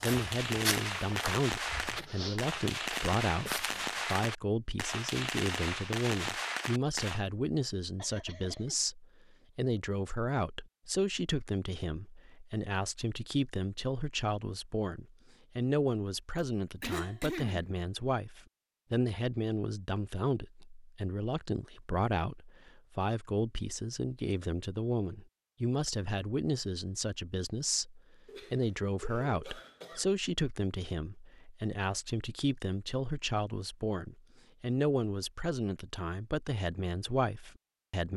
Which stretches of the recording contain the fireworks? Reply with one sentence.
You can hear the fireworks from 0.0 to 7.2 s.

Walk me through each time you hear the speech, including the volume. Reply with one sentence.
You can hear the speech from 0.0 to 38.1 s, at a steady volume.